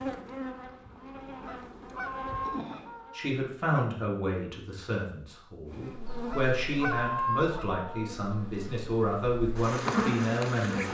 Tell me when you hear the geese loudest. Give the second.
7 s.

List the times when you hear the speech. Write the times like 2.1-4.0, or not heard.
3.1-10.8.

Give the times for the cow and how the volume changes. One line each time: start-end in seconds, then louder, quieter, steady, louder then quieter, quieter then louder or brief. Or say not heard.
not heard.